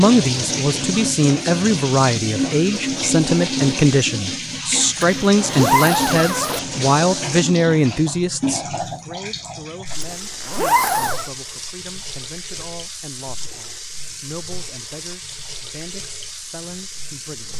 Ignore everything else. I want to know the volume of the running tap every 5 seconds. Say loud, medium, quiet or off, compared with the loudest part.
loud, loud, medium, medium.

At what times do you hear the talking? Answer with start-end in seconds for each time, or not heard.
0.0-17.5.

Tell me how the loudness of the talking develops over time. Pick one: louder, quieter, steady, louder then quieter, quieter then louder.
quieter.